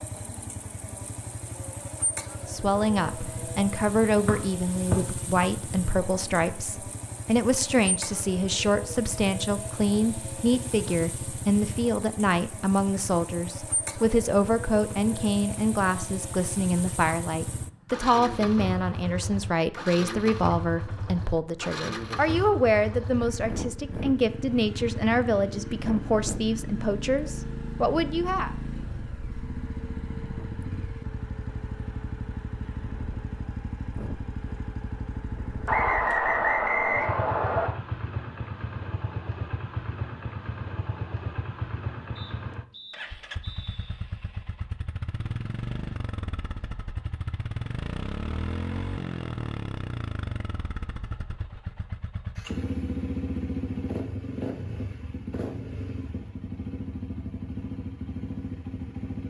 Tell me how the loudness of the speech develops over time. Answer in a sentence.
The volume of the speech stays about the same.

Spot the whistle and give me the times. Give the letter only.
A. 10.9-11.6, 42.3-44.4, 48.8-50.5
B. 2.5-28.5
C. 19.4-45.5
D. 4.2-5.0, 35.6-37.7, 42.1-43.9
D.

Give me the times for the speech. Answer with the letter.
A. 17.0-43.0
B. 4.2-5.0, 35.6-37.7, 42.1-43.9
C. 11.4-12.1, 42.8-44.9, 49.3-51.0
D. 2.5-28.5
D.